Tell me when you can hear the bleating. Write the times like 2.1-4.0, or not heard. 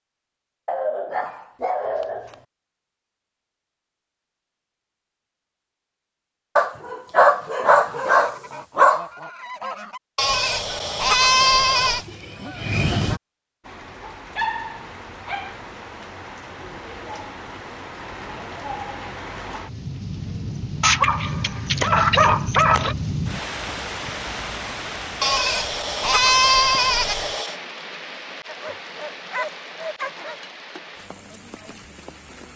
10.2-12.1, 25.2-27.6.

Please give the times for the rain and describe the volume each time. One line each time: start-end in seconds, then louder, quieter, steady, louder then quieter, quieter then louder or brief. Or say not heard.
13.6-32.5 louder then quieter.